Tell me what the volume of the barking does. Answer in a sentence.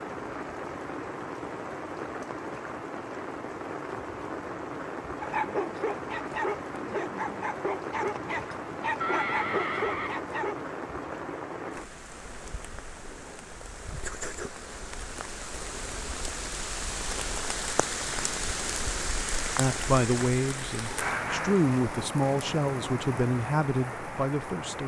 The volume of the barking stays about the same.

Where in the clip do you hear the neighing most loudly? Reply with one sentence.
The volume of the neighing peaks at 9 seconds.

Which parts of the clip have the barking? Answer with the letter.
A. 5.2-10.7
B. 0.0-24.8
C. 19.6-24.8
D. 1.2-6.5
A.